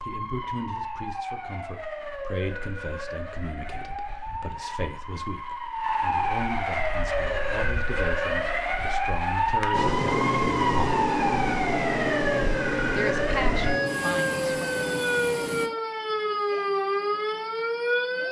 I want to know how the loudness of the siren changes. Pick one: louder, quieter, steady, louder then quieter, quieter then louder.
louder.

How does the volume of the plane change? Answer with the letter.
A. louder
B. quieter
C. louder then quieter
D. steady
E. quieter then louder
B.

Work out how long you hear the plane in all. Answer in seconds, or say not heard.
6 s.